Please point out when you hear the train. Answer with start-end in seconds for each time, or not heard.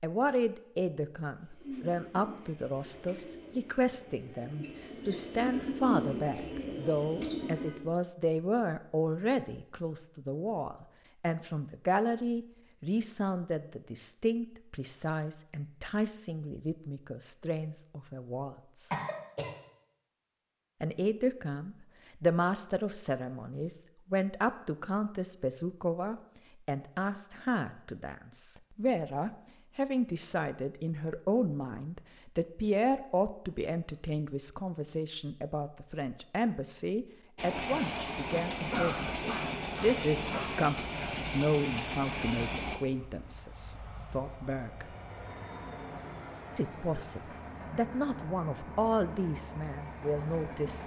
37.4-50.8.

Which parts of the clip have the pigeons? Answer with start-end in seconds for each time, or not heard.
1.4-7.9.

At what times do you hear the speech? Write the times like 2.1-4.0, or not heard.
0.0-18.9, 20.8-45.0, 46.5-50.8.